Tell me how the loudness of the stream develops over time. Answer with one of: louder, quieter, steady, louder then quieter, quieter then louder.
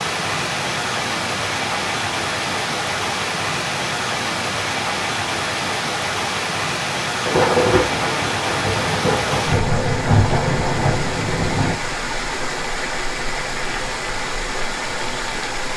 steady.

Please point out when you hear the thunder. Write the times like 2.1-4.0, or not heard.
7.2-11.8.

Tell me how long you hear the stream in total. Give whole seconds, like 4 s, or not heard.
16 s.